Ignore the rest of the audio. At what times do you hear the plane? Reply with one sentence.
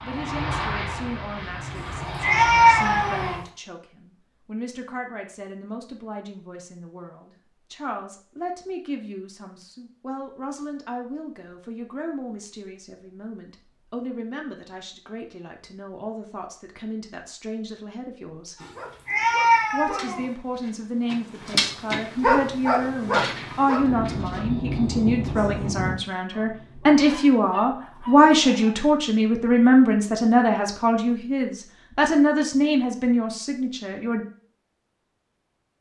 The plane can be heard from 0.0 to 3.4 s and from 22.6 to 25.9 s.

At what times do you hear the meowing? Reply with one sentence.
You can hear the meowing from 1.8 to 3.5 s and from 18.6 to 20.3 s.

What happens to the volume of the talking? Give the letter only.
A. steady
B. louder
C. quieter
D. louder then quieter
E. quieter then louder
B.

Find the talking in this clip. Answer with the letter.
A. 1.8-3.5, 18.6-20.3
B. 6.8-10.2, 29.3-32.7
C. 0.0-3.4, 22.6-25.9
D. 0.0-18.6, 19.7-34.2
D.